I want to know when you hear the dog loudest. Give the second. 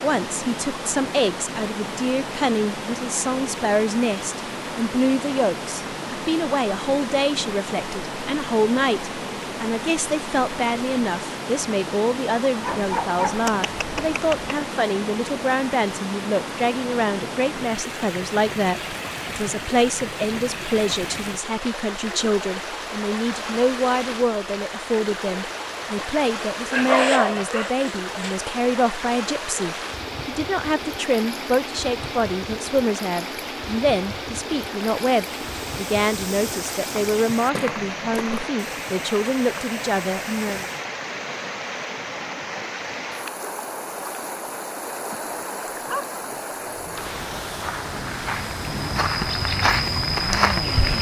27 s.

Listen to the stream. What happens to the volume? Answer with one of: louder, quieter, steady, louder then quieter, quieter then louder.
steady.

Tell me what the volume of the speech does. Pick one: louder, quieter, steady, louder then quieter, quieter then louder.
steady.